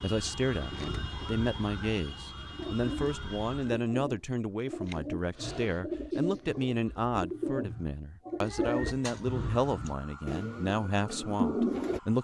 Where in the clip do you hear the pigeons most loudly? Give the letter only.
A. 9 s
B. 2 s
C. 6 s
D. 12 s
D.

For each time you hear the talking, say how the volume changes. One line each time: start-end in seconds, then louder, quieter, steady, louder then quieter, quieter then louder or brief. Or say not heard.
0.0-12.1 steady.